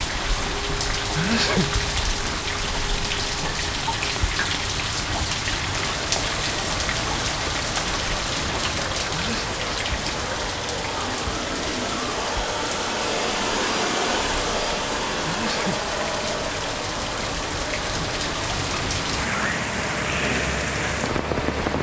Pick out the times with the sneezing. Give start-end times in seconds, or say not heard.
0.9-1.8, 9.1-9.6, 15.2-15.8.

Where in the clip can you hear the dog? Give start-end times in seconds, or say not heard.
not heard.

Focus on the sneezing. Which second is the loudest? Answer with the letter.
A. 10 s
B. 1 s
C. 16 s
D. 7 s
B.